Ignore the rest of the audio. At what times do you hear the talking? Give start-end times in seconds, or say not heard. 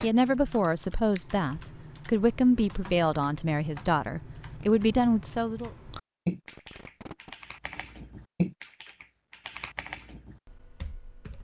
0.0-5.7.